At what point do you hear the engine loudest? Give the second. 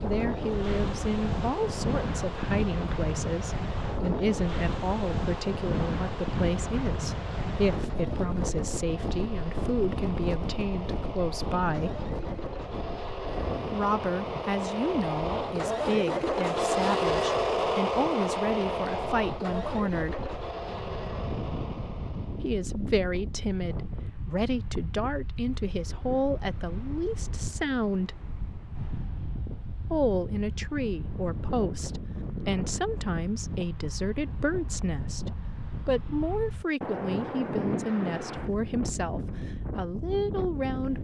17 s.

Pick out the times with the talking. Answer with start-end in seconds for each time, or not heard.
0.0-12.0, 13.7-20.3, 22.4-28.2, 29.9-40.9.